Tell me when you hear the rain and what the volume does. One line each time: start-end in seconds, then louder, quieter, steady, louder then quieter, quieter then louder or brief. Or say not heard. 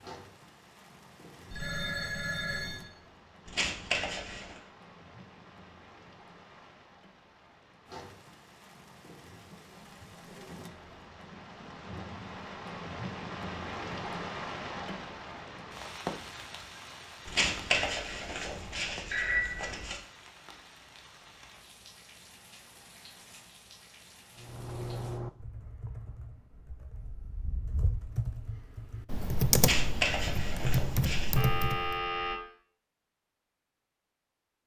0.0-25.2 louder then quieter.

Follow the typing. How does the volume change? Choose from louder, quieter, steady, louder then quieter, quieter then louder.
quieter then louder.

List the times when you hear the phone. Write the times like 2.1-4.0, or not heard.
1.5-2.9, 19.1-19.7, 31.4-32.4.